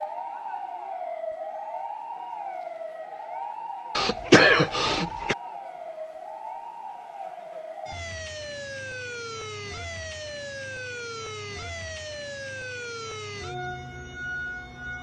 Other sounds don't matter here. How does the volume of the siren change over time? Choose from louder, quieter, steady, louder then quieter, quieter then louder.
steady.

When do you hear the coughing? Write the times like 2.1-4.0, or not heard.
4.0-5.3.